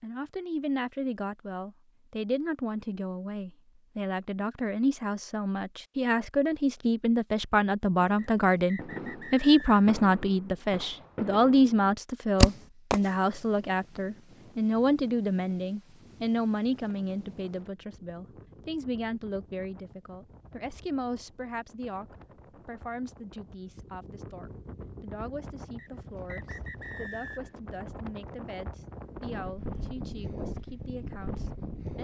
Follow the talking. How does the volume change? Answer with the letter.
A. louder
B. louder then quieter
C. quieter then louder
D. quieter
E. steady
B.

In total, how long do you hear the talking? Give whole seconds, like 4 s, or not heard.
32 s.